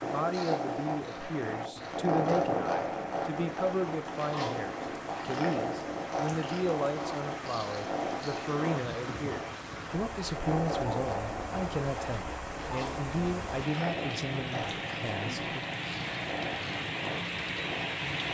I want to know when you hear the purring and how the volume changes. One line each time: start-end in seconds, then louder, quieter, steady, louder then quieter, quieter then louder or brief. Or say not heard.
0.0-18.2 quieter.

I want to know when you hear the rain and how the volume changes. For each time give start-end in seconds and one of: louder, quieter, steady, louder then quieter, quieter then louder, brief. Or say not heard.
0.0-18.2 louder.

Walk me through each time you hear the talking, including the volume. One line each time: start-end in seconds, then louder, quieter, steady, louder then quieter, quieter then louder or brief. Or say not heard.
0.0-15.7 steady.